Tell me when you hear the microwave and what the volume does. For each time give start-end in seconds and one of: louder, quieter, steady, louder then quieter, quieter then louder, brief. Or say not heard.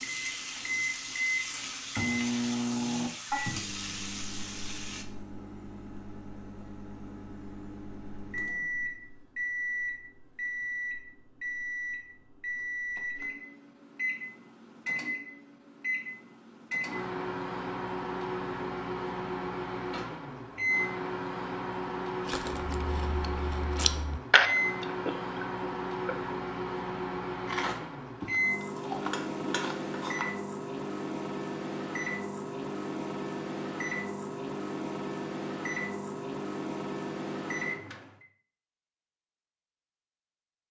0.0-38.2 steady.